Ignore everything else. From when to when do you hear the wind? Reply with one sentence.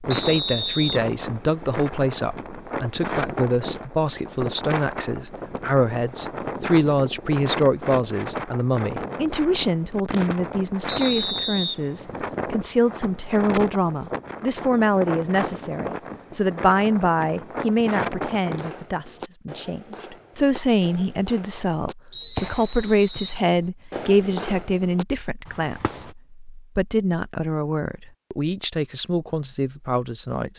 The wind can be heard from 0.0 to 18.9 s.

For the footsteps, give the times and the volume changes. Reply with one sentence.
You can't hear the footsteps here.